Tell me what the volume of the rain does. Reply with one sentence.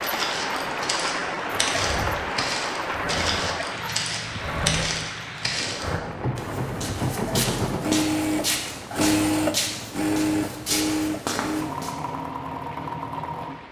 The volume of the rain goes down.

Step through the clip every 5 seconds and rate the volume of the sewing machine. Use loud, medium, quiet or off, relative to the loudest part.
medium, loud, loud.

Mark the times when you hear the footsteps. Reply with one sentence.
You can hear the footsteps from 0.0 to 11.9 s.